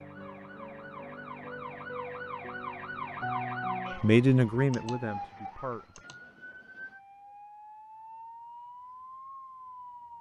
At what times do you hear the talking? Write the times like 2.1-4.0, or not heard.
4.0-6.0.